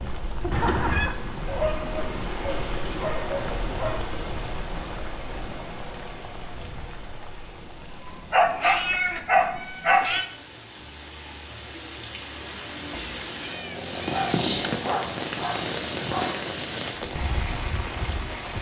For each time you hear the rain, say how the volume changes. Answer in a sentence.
You can hear the rain from 0.0 to 18.5 s, getting quieter then louder.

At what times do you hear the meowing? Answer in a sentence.
You can hear the meowing from 0.5 to 1.1 s, from 8.1 to 10.2 s and from 12.9 to 15.1 s.